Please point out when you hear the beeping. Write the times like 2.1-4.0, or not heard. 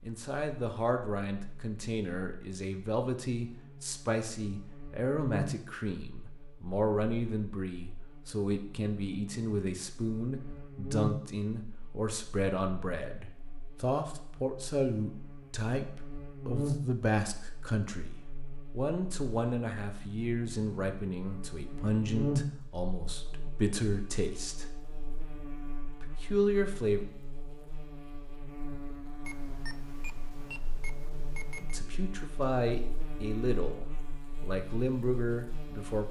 29.2-31.8.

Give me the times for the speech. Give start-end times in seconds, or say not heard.
0.0-24.8, 25.9-27.0, 31.6-36.0.